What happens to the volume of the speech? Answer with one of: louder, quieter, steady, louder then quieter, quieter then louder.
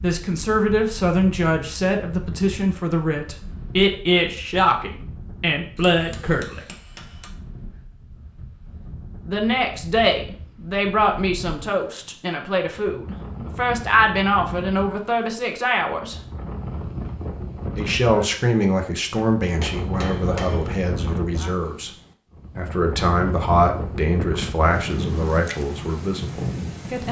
steady.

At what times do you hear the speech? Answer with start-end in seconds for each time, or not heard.
0.0-6.8, 9.2-16.1, 17.8-21.9, 22.6-27.0.